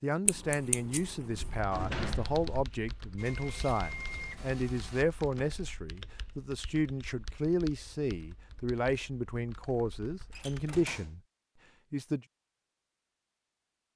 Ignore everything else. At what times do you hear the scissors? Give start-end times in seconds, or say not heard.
0.2-1.6.